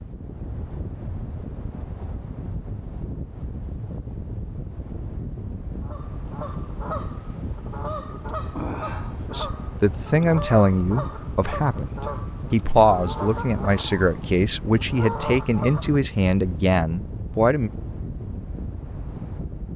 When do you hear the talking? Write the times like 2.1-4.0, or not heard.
9.2-17.7.